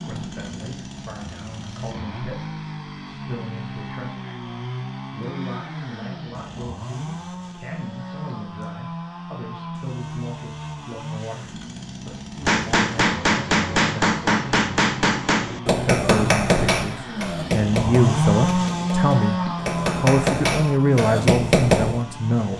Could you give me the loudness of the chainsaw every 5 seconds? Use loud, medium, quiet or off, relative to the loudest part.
medium, medium, medium, loud, medium.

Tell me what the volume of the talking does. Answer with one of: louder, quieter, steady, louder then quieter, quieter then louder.
louder.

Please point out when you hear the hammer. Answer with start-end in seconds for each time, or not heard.
12.4-22.1.